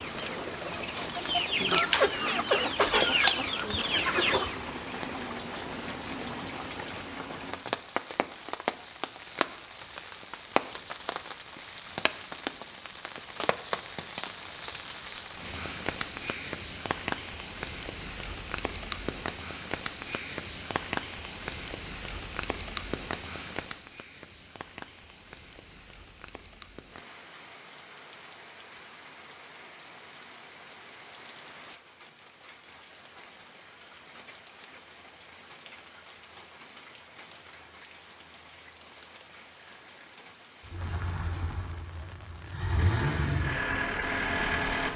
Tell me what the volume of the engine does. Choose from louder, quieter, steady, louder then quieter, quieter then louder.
quieter then louder.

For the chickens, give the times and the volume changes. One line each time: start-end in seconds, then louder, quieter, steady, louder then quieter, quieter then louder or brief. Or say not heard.
0.0-4.5 louder then quieter.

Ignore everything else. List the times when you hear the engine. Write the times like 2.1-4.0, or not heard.
40.6-44.9.